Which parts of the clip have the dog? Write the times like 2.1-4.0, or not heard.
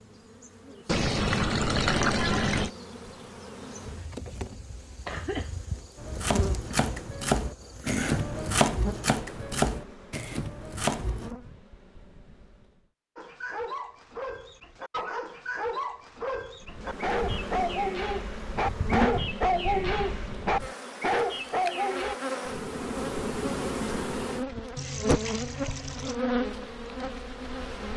13.2-22.1.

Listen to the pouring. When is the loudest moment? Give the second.
2 s.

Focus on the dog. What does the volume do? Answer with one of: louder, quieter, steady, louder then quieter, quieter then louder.
louder.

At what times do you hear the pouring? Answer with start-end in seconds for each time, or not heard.
0.8-2.7, 24.8-26.1.